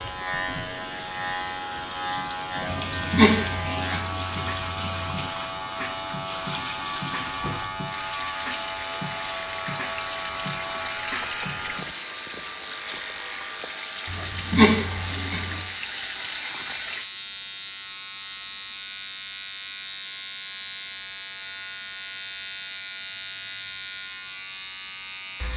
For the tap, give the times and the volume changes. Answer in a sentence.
The tap can be heard from 0.2 to 17.1 s, at a steady volume.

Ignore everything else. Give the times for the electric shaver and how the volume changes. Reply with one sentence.
The electric shaver can be heard from 0.0 to 25.5 s, at a steady volume.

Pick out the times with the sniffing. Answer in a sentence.
The sniffing can be heard from 2.9 to 5.2 s and from 14.1 to 15.7 s.